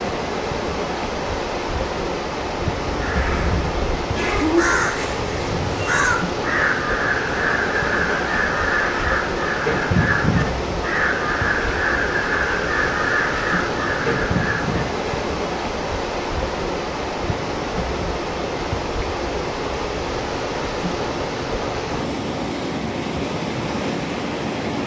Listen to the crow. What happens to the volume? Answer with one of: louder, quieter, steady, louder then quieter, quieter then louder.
steady.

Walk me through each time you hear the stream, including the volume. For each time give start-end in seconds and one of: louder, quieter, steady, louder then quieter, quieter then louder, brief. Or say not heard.
0.0-24.8 steady.